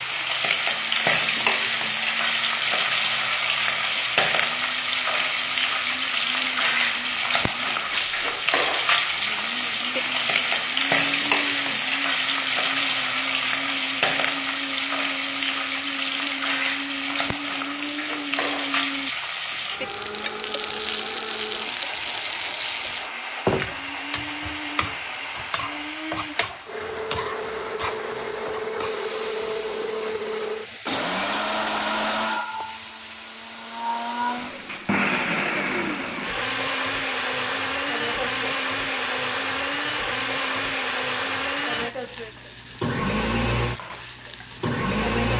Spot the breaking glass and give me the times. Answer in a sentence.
The breaking glass can be heard from 7.9 to 8.3 s.